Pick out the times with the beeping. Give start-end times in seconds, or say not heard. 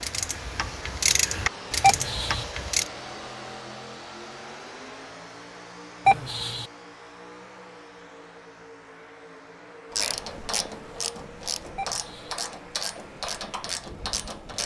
1.8-2.5, 6.0-6.7, 11.8-12.3.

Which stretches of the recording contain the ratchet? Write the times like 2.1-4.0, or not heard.
0.0-2.9, 9.9-14.6.